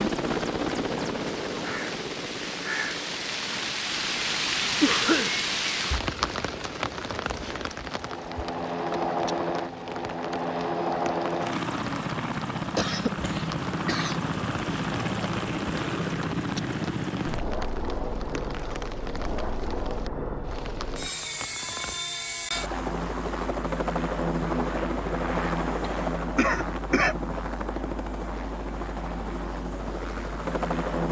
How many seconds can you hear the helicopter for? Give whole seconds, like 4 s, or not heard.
31 s.